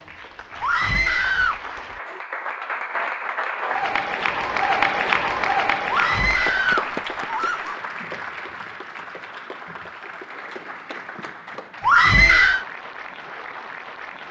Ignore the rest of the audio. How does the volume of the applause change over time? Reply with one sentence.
The volume of the applause goes up, then down.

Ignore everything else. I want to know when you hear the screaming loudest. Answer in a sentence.
The volume of the screaming peaks at 12 seconds.